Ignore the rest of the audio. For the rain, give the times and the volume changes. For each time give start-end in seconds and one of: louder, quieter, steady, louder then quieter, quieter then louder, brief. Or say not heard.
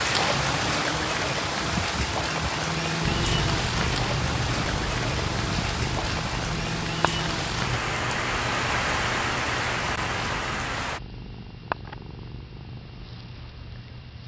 0.0-11.0 steady.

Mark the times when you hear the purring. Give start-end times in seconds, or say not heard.
3.0-14.2.